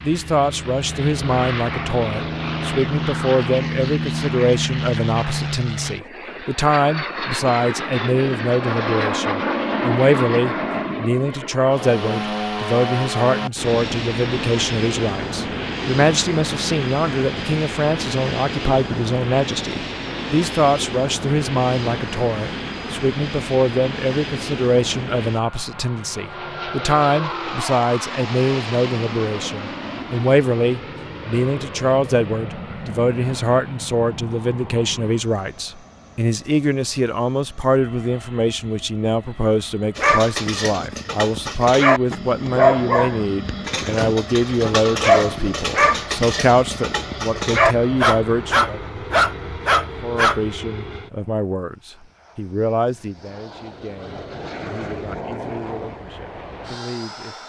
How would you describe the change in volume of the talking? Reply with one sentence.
The volume of the talking stays about the same.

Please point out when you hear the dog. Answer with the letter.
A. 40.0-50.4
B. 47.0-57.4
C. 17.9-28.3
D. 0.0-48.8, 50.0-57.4
A.